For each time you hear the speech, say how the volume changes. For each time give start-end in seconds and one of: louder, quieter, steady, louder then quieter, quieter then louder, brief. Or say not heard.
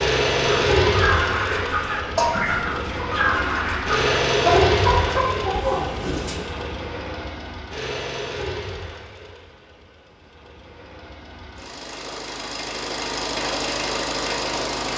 not heard.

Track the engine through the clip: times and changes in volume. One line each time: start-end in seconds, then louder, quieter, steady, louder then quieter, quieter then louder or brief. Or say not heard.
0.0-14.9 quieter then louder.